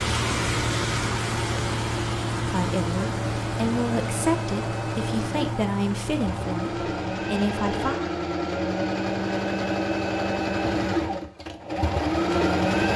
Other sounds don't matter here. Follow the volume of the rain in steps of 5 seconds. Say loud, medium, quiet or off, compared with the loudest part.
loud, medium, off.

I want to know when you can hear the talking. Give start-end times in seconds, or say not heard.
2.4-8.1.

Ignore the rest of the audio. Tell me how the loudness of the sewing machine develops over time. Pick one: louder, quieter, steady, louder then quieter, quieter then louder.
louder.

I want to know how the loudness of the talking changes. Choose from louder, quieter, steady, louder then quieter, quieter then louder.
steady.